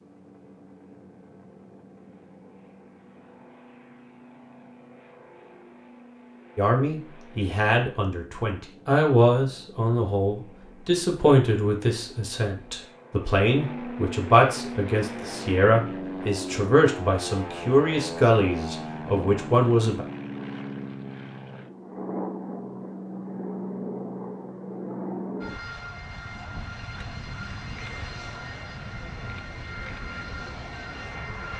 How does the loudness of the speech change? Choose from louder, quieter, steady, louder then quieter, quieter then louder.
steady.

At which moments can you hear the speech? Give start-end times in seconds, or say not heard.
6.5-20.1.